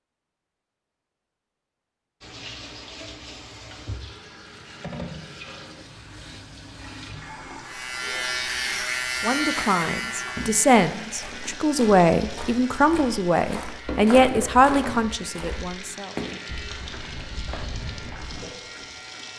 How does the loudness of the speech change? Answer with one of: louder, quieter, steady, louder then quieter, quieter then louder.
steady.